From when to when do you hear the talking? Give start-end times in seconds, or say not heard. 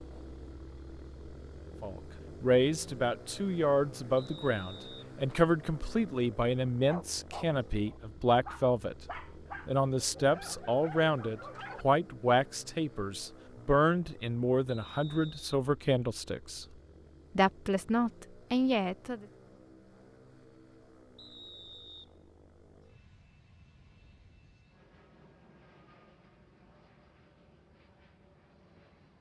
1.8-8.9, 9.7-16.6, 17.4-19.2.